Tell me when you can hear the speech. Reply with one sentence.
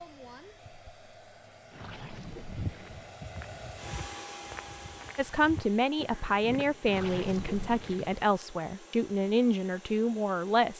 The speech can be heard from 5.2 to 10.7 s.